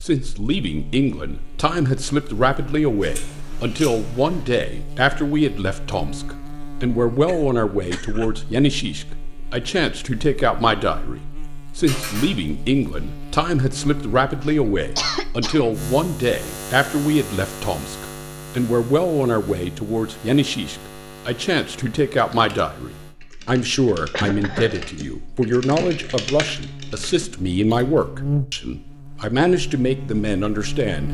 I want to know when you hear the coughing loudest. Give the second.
15 s.